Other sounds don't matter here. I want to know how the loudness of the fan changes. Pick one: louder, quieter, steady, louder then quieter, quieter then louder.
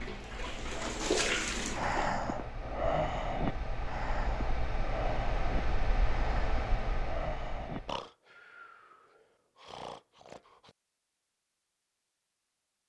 louder.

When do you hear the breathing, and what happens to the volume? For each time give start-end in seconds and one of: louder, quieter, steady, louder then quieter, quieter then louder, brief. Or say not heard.
1.8-10.8 quieter.